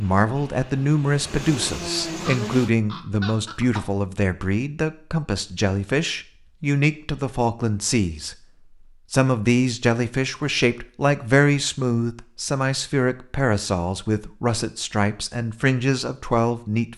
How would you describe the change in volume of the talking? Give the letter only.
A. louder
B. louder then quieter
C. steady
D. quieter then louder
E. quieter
C.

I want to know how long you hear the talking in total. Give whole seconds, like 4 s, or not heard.
16 s.